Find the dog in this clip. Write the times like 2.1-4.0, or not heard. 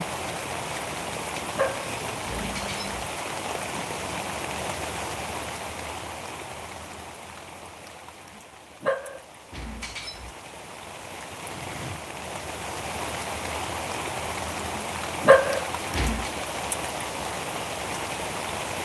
1.6-2.9, 8.8-10.3, 15.2-16.3.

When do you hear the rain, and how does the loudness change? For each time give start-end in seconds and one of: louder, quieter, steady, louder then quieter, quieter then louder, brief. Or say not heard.
0.0-18.7 quieter then louder.